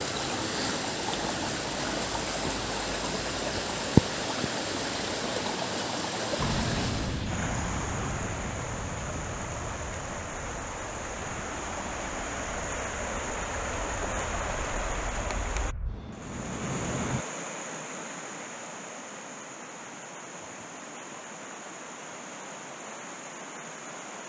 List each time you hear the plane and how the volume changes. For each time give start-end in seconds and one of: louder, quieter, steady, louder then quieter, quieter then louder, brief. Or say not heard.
6.3-17.2 quieter then louder.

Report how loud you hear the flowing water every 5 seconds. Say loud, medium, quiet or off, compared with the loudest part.
loud, medium, medium, medium, quiet.